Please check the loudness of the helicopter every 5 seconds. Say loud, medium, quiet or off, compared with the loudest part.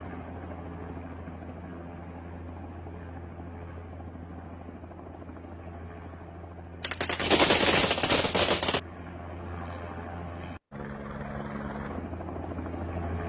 medium, medium, loud.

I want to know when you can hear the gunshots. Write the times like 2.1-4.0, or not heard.
6.8-8.8.